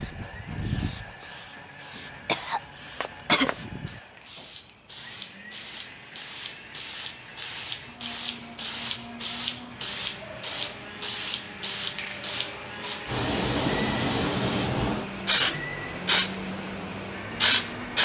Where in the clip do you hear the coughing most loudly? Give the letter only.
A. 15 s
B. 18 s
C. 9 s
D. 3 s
D.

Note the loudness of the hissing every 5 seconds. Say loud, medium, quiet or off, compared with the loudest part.
quiet, medium, loud, loud.